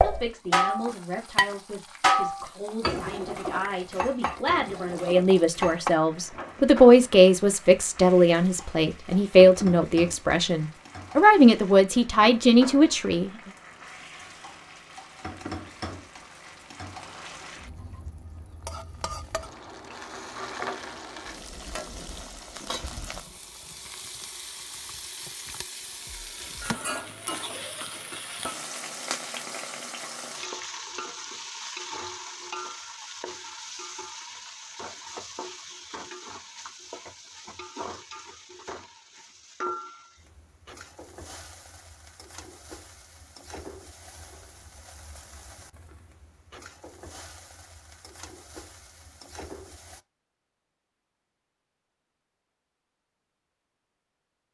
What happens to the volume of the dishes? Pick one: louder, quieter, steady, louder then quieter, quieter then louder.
quieter.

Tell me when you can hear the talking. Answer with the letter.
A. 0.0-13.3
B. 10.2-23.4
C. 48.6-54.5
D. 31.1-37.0
A.